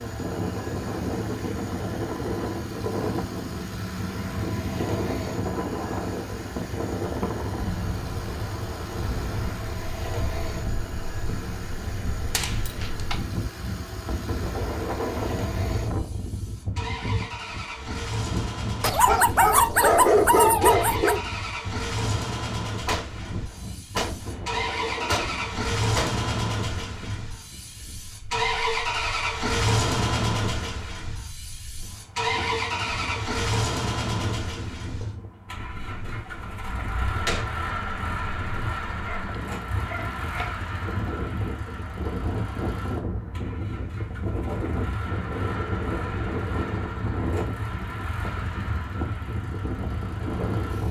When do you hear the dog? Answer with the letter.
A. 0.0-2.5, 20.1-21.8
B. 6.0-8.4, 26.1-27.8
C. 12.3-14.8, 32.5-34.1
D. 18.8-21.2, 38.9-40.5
D.